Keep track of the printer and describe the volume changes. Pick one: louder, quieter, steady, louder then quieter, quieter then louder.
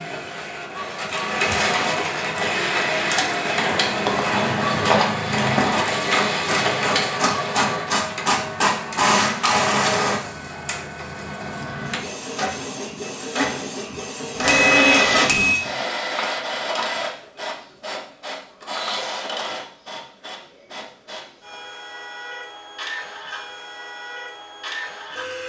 quieter.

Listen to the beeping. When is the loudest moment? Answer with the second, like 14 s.
15 s.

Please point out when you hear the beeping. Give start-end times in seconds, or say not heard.
4.0-4.5, 14.3-15.6.